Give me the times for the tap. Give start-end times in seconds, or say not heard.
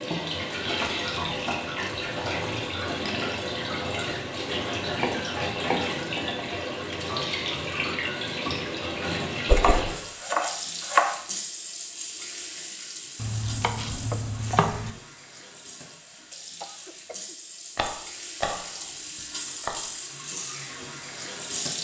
0.0-21.7.